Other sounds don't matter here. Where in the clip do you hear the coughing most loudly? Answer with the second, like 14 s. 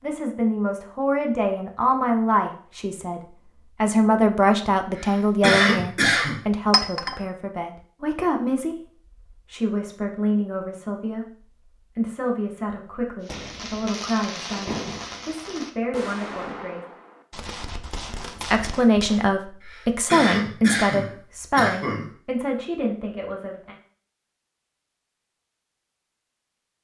6 s.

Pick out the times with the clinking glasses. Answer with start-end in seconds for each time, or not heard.
6.7-7.2.